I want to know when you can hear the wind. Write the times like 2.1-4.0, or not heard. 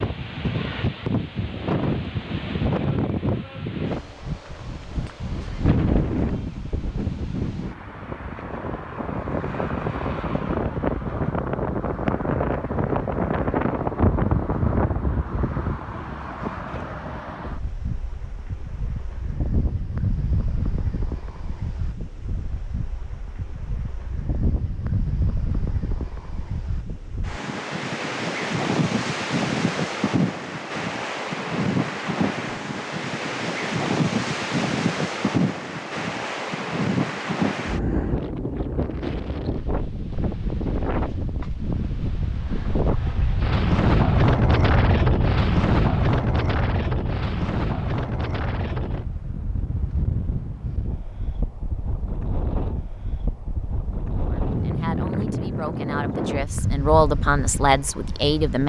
0.0-58.6.